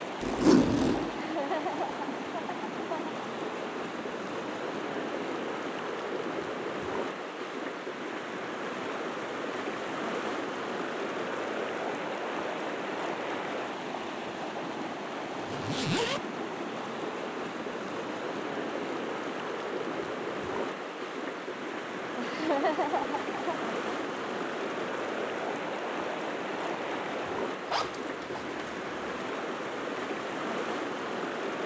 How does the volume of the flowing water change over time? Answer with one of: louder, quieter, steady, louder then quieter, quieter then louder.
steady.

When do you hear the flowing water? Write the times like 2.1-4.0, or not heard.
0.0-31.6.